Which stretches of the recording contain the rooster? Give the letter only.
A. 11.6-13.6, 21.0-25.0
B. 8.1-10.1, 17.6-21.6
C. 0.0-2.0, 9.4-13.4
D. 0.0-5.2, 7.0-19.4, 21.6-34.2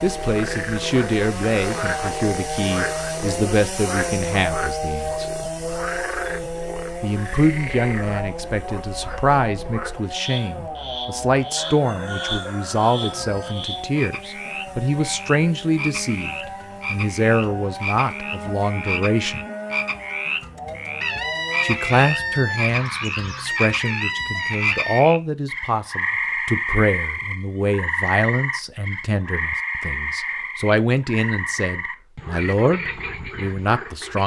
A.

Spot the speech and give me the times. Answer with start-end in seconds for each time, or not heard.
0.0-5.2, 7.0-19.4, 21.6-34.2.